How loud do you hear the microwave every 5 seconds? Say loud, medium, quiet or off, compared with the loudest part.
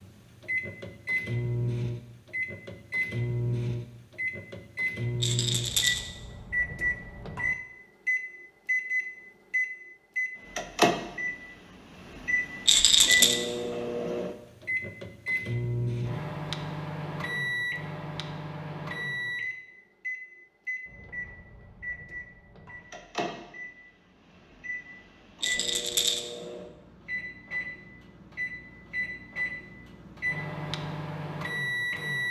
loud, loud, loud, loud, medium, medium, loud.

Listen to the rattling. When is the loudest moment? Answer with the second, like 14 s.
13 s.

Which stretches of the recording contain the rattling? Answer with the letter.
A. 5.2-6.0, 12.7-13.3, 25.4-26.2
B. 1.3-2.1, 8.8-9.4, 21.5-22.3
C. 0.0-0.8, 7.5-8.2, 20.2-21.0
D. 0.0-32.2
A.